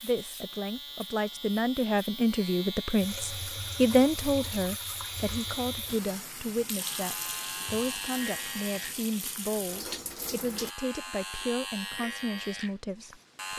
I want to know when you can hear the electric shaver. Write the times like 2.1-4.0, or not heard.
0.0-13.5.